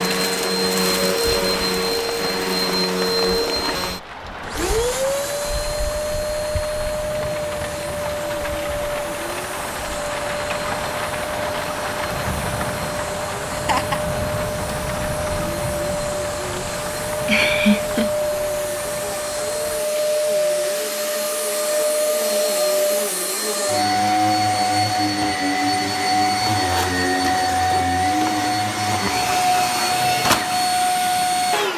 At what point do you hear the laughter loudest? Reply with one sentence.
The volume of the laughter peaks at 18 seconds.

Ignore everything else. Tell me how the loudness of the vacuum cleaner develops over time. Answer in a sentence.
The volume of the vacuum cleaner goes down, then up.